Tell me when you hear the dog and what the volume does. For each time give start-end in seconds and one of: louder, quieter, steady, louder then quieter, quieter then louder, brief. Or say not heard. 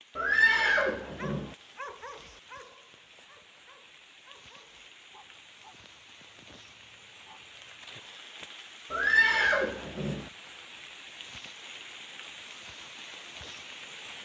1.1-7.7 quieter.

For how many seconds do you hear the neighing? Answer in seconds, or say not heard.
3 s.